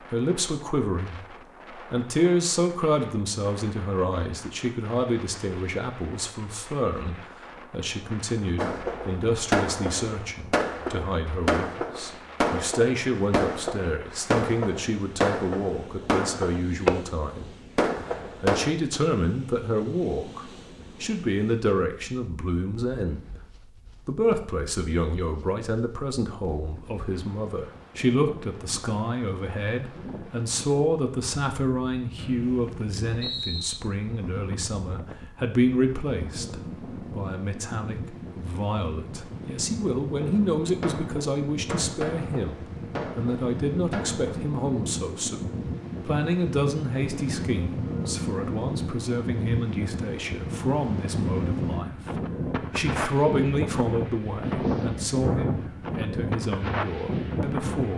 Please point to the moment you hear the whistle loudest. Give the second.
33 s.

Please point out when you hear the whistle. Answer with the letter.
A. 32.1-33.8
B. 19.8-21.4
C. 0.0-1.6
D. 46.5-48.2
A.